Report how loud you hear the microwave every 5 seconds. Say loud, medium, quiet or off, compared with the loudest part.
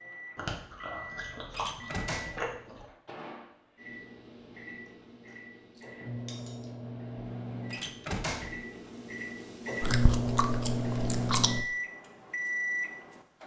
quiet, medium, loud.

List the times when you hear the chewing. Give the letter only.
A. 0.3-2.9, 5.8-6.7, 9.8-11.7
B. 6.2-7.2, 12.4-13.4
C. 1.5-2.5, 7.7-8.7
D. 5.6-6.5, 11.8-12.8
A.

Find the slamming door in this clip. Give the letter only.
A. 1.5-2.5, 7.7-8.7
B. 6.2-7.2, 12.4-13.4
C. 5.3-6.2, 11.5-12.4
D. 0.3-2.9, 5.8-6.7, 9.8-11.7
A.